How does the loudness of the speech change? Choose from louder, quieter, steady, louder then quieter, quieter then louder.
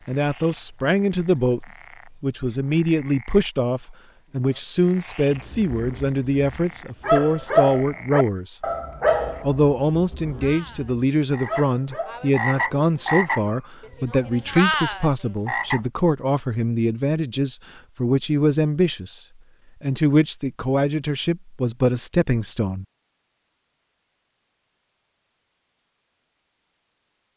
steady.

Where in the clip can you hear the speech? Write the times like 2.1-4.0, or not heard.
0.1-8.6, 9.4-22.9.